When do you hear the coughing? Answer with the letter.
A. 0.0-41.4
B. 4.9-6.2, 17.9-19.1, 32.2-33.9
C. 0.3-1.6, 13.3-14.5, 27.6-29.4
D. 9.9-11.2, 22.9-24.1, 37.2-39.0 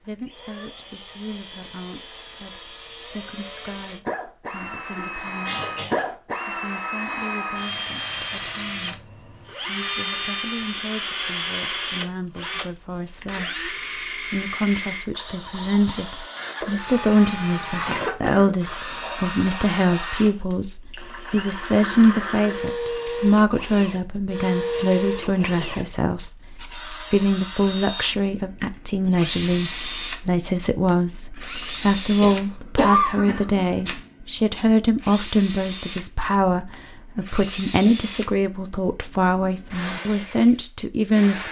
B.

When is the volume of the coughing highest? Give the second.
33 s.